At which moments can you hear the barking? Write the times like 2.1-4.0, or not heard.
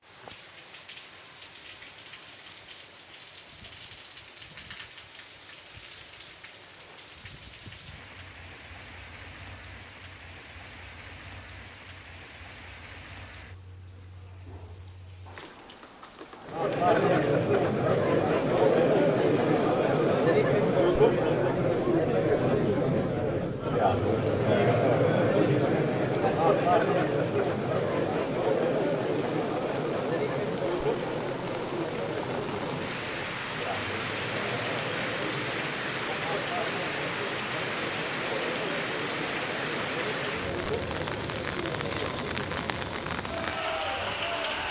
not heard.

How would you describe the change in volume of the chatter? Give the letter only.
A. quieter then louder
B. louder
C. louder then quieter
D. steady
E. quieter
E.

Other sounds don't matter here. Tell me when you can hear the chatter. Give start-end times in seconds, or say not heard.
16.4-44.6.